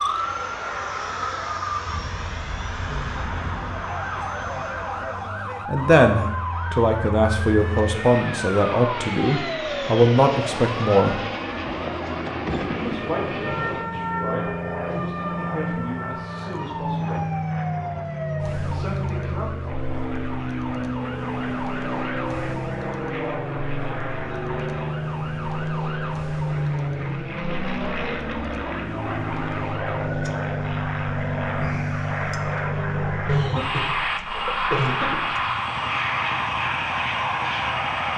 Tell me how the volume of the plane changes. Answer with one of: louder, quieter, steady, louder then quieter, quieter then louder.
louder.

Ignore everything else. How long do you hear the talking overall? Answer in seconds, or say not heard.
11 s.